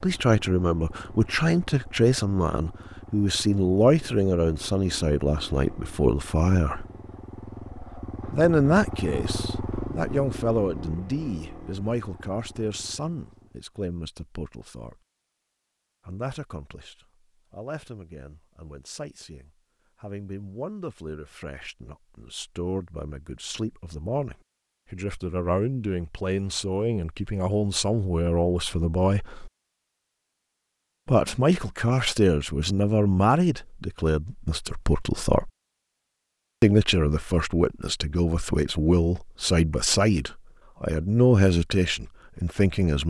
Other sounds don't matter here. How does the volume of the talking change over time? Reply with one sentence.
The volume of the talking goes down, then up.